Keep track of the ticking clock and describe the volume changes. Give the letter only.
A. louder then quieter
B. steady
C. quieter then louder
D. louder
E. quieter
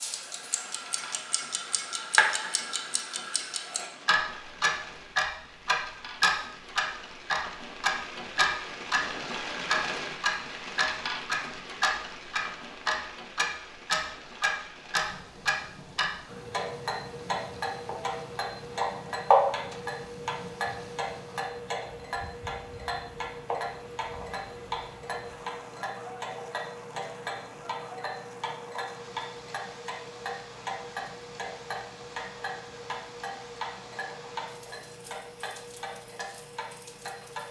E.